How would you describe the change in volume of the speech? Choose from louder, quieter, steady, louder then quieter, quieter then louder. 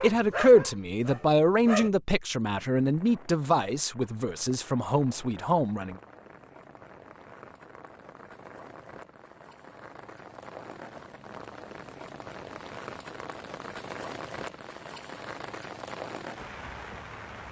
quieter.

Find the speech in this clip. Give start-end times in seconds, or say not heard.
0.0-6.0.